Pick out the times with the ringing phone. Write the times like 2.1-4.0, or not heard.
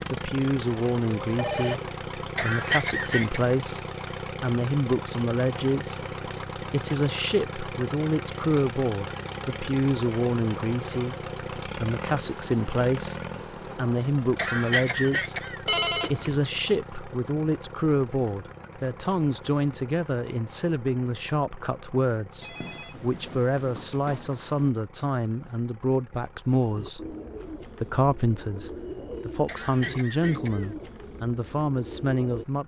1.2-1.8, 15.7-16.4, 22.4-24.7.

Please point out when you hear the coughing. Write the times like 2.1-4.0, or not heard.
2.4-3.5, 14.3-15.7, 29.4-30.8.